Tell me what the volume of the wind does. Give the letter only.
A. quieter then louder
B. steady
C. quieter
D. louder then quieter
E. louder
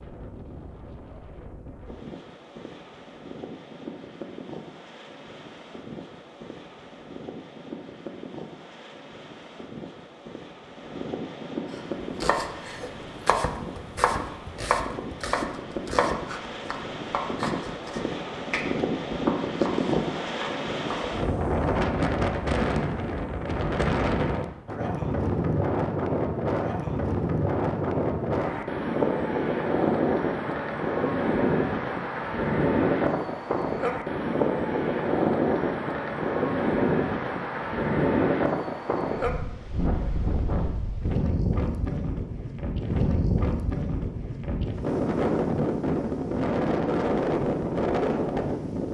E.